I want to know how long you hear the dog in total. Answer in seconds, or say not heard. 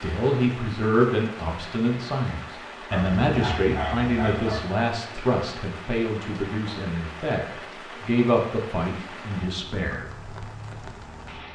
2 s.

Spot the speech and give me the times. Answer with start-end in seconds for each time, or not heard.
0.0-10.1.